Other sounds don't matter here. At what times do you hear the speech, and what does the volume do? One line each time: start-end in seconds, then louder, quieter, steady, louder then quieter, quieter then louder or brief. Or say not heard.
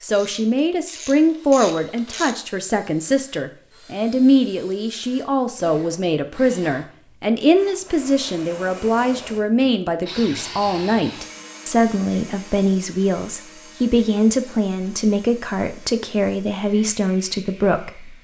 0.0-18.1 steady.